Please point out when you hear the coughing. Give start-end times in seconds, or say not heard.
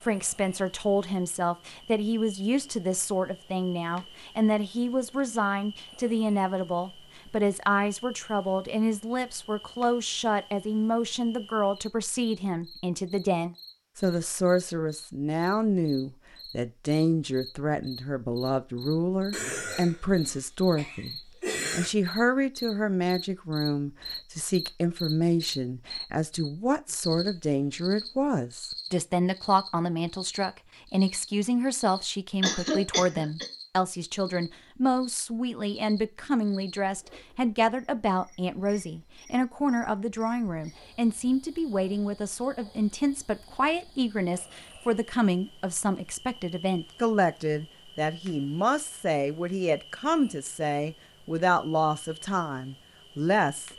19.3-21.9, 32.4-33.5.